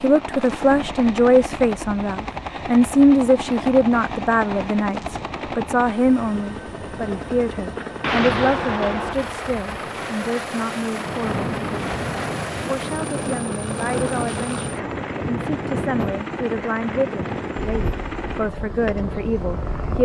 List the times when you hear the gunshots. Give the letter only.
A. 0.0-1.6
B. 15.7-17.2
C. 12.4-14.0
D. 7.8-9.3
D.